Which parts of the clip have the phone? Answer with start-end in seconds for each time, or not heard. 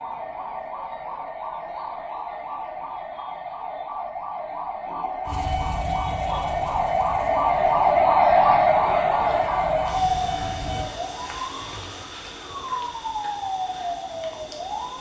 not heard.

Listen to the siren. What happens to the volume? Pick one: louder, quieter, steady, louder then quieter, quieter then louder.
louder then quieter.